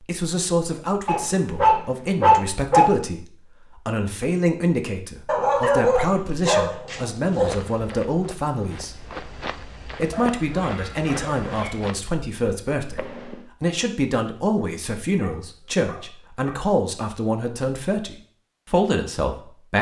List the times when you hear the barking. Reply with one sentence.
The barking can be heard from 1.1 to 2.9 s, from 5.2 to 7.7 s, from 10.1 to 11.8 s and from 15.1 to 16.6 s.